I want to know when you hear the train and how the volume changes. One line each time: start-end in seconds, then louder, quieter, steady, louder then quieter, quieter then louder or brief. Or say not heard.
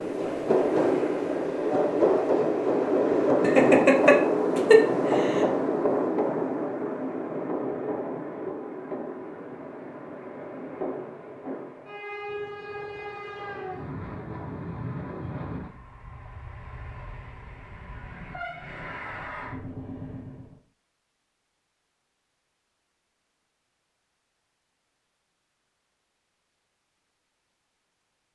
0.0-20.6 quieter.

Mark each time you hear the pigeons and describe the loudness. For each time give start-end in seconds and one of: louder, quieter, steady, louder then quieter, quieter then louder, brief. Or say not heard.
not heard.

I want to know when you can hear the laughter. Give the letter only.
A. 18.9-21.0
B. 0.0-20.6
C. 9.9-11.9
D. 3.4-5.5
D.